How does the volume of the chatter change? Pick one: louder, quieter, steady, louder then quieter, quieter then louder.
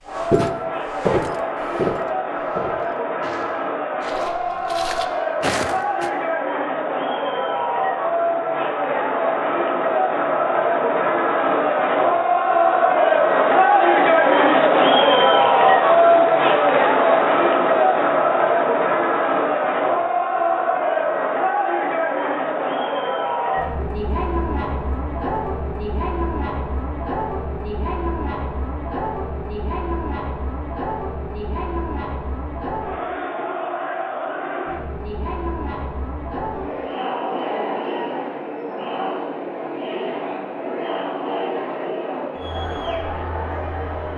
louder then quieter.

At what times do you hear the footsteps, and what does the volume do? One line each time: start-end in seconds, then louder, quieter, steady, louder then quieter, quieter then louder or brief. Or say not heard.
0.1-6.1 quieter then louder.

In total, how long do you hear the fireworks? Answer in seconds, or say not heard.
not heard.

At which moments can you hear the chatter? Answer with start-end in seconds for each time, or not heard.
0.0-44.1.